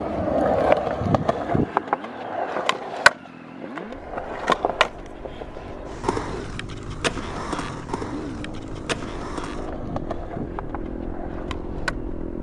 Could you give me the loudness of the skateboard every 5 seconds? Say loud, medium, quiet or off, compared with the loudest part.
loud, medium, quiet.